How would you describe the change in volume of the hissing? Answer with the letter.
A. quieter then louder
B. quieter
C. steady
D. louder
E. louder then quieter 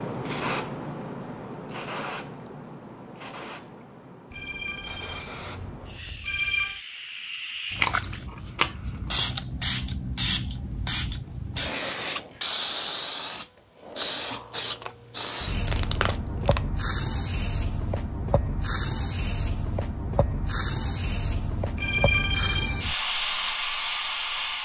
D.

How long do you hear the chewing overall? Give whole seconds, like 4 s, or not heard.
4 s.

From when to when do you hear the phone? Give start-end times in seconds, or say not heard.
4.3-6.8, 21.8-22.9.